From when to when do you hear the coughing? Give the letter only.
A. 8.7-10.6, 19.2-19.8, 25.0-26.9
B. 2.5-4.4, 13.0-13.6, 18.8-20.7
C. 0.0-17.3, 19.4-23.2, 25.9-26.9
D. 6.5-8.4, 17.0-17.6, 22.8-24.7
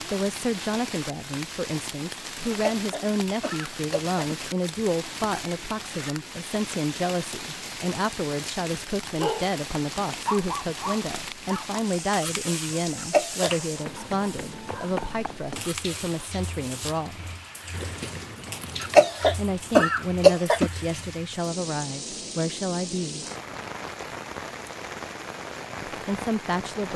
B.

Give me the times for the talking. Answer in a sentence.
You can hear the talking from 0.0 to 17.3 s, from 19.4 to 23.2 s and from 25.9 to 26.9 s.